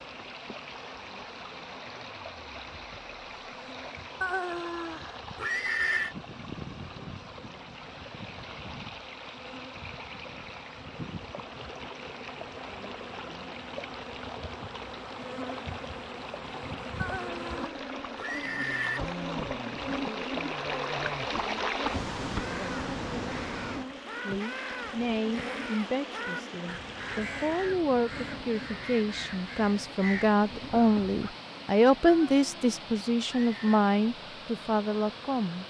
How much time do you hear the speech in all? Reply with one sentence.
You can hear the speech for 11 seconds altogether.